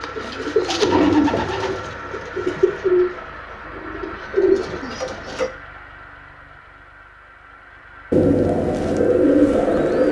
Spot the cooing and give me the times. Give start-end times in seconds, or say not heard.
0.0-5.5, 8.1-10.0.